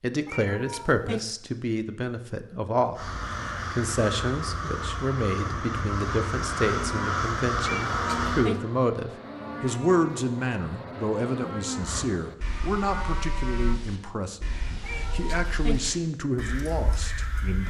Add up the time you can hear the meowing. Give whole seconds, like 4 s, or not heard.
3 s.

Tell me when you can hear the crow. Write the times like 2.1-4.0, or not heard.
3.0-8.5, 11.8-17.6.